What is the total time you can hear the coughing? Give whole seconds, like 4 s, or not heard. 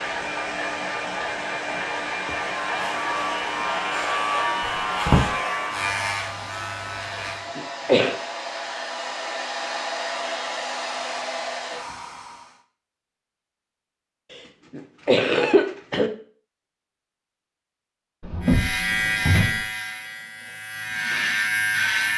2 s.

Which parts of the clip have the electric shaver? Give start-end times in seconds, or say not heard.
2.1-7.5, 18.4-22.1.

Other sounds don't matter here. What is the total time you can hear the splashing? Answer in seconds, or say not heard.
not heard.